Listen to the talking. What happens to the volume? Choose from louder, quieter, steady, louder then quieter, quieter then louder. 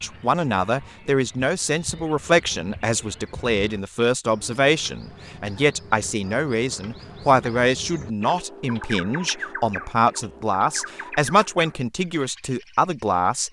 steady.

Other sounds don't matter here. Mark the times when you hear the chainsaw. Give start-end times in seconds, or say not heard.
not heard.